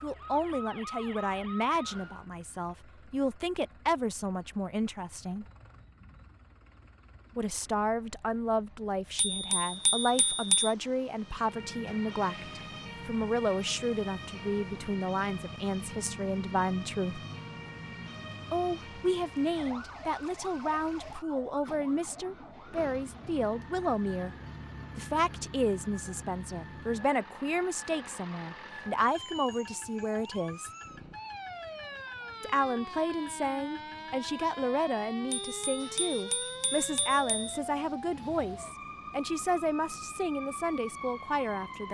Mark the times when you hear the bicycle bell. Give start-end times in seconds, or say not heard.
9.2-10.8, 35.3-37.5.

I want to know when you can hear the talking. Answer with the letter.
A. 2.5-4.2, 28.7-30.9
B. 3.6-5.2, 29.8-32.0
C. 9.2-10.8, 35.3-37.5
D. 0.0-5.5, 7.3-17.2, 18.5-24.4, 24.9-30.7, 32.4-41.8
D.